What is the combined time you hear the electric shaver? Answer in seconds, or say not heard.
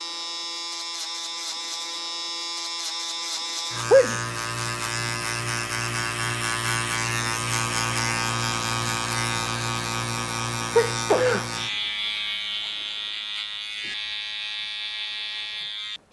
16 s.